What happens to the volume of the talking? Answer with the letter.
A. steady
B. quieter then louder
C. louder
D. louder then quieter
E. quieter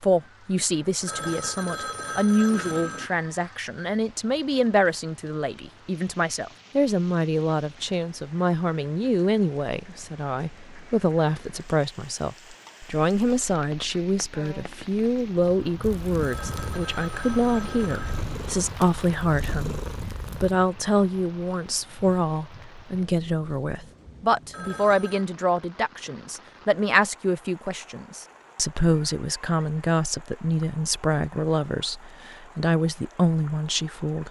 A.